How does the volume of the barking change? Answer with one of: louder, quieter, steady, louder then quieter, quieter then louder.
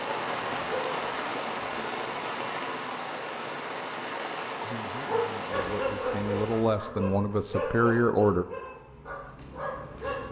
quieter.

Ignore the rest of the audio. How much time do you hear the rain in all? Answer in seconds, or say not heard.
7 s.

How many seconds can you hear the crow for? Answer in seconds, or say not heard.
not heard.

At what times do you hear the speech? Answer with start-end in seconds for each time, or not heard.
4.6-8.4.